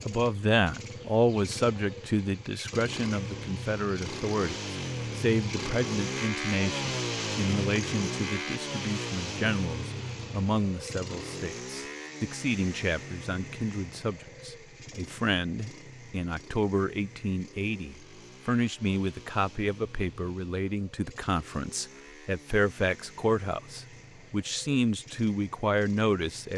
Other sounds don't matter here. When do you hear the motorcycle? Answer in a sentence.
You can hear the motorcycle from 0.0 to 26.5 s.